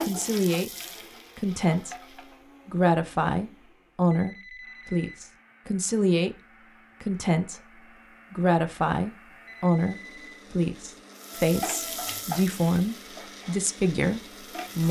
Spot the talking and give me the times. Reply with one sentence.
The talking can be heard from 0.0 to 0.7 s, from 1.4 to 6.3 s and from 7.0 to 14.8 s.